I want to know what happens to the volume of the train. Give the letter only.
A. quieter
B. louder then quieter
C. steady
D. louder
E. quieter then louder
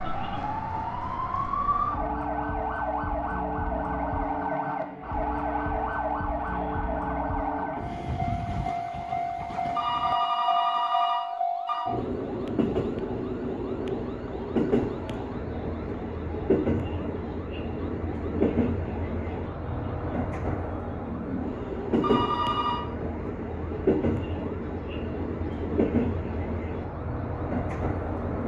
D.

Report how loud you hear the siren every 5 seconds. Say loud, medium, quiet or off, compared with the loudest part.
loud, loud, quiet, quiet, quiet, quiet.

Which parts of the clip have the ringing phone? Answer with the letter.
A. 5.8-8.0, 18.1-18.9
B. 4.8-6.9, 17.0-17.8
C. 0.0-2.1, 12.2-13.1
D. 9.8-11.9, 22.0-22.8
D.